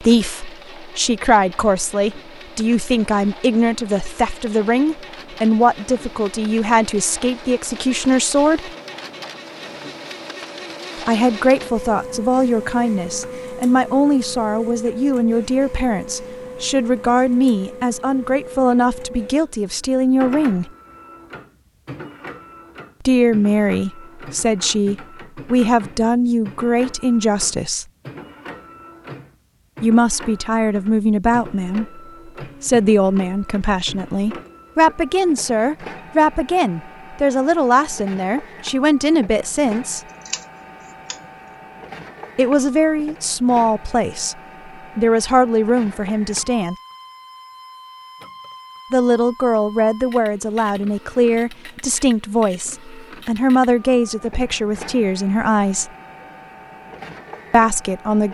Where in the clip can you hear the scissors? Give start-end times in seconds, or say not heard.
40.0-41.2.